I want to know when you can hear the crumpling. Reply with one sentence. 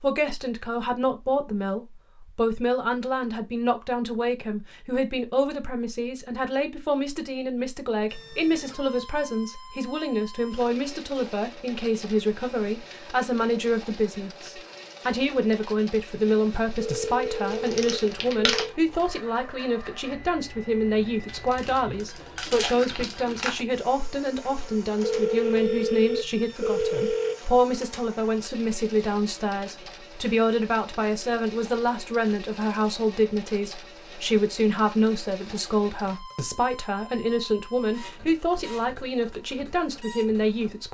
The crumpling can be heard from 17.5 to 18.7 s and from 21.2 to 23.6 s.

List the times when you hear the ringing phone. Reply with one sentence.
The ringing phone can be heard from 16.8 to 18.8 s and from 25.0 to 27.4 s.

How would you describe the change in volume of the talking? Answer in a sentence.
The loudness of the talking stays about the same.